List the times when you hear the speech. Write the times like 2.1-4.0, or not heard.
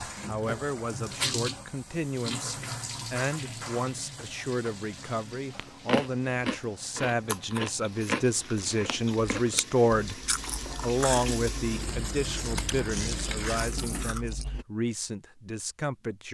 0.1-16.3.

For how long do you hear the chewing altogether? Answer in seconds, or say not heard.
9 s.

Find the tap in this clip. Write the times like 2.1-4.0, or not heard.
0.0-14.2.